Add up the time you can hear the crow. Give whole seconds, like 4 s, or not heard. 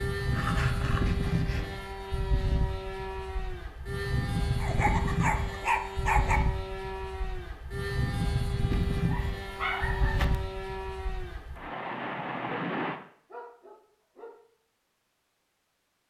not heard.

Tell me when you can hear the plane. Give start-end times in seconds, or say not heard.
0.0-13.0.